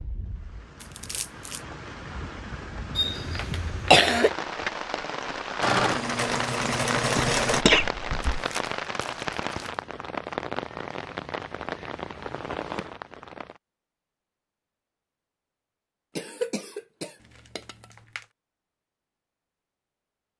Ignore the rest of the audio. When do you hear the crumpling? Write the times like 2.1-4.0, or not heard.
0.8-1.6, 8.3-9.8, 17.2-18.2.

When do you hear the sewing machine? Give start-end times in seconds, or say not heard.
5.6-7.7.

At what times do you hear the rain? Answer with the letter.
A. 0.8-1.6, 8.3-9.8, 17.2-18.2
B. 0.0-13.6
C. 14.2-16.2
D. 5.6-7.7
B.